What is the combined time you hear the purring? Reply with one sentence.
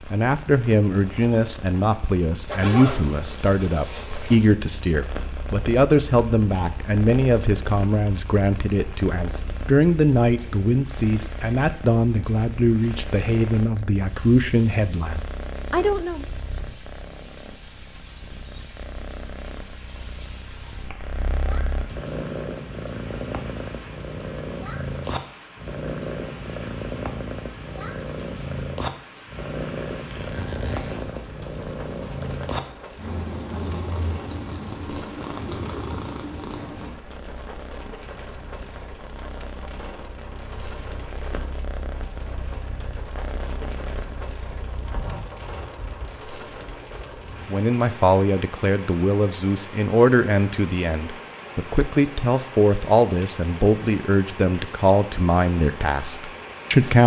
You can hear the purring for 45 seconds altogether.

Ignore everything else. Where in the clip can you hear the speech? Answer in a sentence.
You can hear the speech from 0.1 to 16.2 s and from 47.5 to 57.0 s.